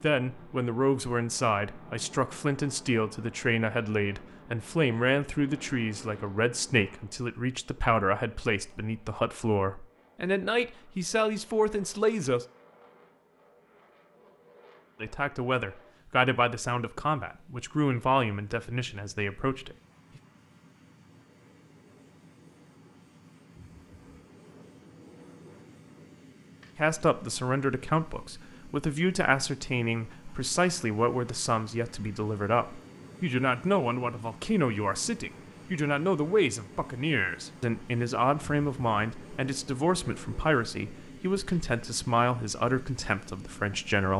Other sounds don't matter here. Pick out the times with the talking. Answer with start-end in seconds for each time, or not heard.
0.0-12.4, 15.0-19.8, 26.8-44.1.